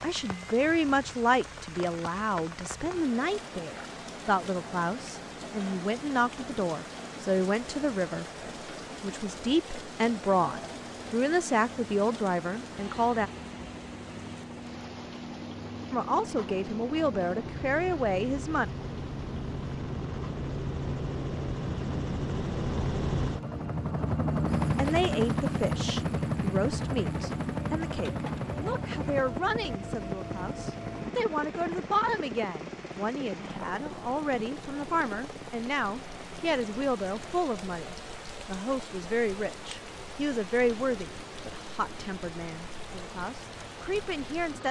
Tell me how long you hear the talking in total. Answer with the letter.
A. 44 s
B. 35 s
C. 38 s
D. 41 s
B.